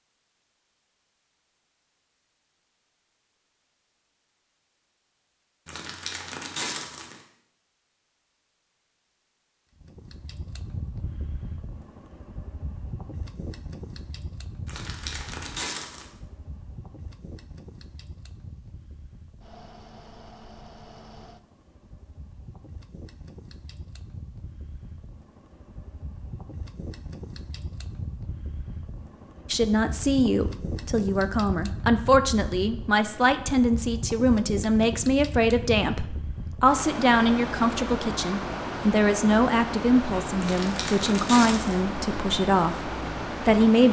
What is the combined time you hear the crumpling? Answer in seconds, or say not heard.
4 s.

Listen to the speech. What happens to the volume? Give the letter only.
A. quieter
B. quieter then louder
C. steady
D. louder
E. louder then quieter
C.